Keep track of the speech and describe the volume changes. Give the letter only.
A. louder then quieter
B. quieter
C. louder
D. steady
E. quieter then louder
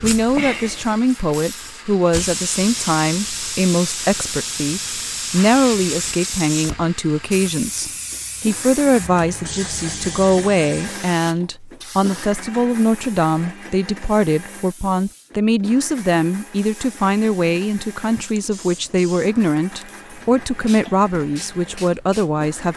D.